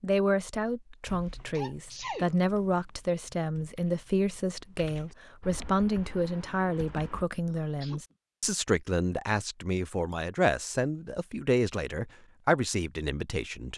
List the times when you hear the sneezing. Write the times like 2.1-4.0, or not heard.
1.6-2.4, 7.5-8.2.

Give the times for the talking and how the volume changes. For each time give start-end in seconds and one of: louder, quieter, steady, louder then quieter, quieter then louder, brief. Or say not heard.
0.0-13.7 steady.